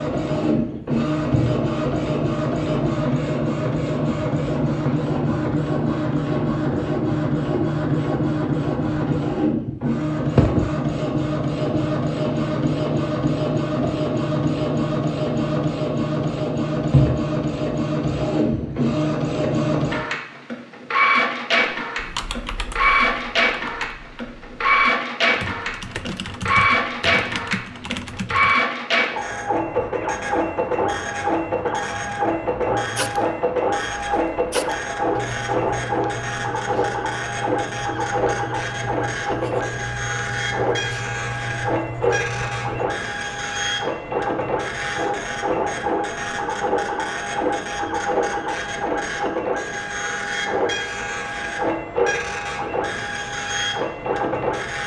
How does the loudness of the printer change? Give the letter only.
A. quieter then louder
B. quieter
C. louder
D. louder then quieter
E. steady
E.